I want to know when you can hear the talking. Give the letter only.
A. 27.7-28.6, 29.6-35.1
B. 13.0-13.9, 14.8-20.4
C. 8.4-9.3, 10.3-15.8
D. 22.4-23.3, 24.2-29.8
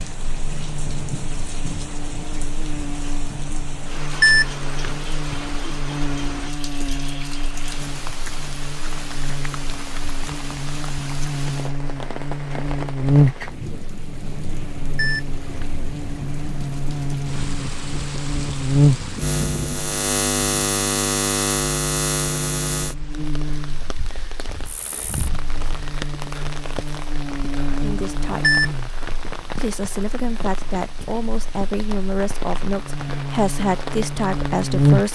A.